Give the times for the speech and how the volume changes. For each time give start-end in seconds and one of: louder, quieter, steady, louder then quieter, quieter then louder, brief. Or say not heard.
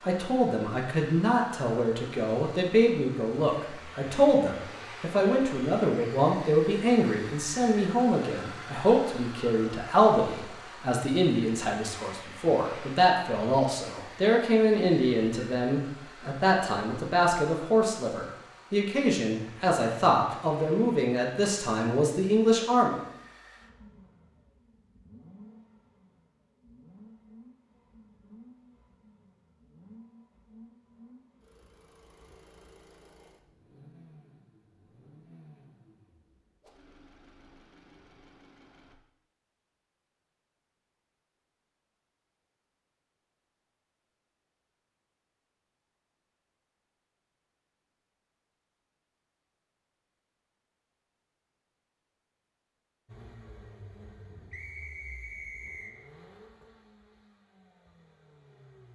0.0-22.9 steady.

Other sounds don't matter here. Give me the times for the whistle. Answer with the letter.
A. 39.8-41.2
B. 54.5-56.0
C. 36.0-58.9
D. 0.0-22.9
B.